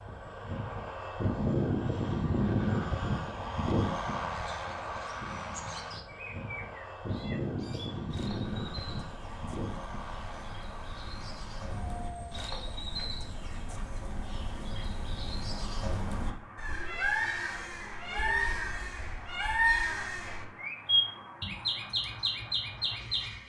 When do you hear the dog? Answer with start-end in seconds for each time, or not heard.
not heard.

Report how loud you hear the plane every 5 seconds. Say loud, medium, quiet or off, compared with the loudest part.
loud, medium, quiet, quiet, quiet.